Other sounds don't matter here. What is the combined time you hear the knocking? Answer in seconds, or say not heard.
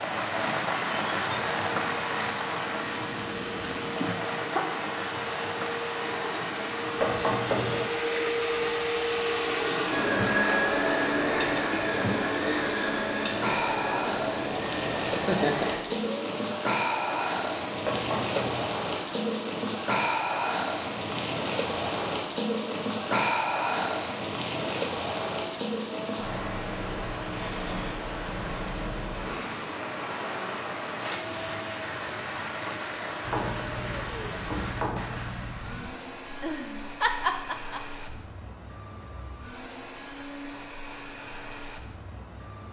4 s.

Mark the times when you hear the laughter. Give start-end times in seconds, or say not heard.
4.0-4.7, 15.1-15.8, 36.3-38.0.